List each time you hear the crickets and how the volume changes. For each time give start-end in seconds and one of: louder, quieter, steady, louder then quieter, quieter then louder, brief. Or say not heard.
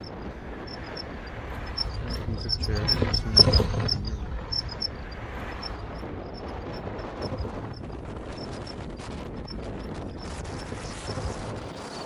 0.0-12.0 louder then quieter.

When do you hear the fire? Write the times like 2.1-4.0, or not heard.
not heard.